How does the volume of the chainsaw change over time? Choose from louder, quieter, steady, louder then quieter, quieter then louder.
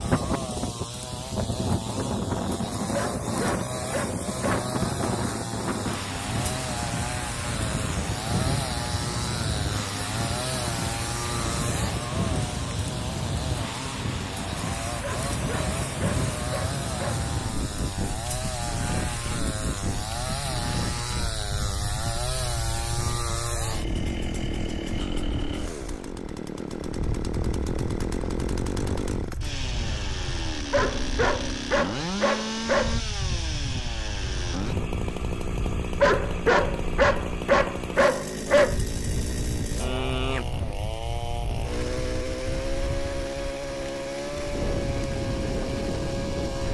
steady.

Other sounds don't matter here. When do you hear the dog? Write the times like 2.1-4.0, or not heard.
2.9-4.7, 15.0-17.2, 30.7-33.0, 36.0-38.8.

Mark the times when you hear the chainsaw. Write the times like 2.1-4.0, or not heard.
0.0-46.6.